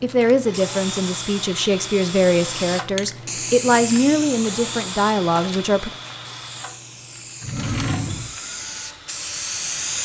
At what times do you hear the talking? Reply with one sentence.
You can hear the talking from 0.0 to 5.9 s.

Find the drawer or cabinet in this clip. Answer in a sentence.
The drawer or cabinet can be heard from 7.4 to 8.3 s.